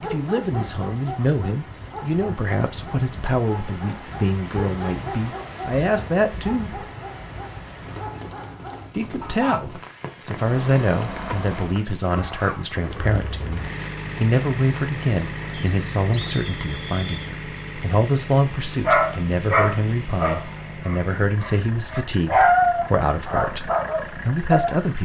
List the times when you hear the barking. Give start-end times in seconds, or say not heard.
0.0-9.6, 18.9-24.8.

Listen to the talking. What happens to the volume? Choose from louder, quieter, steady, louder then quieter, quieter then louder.
steady.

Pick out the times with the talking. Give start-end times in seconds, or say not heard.
0.0-6.7, 8.9-25.0.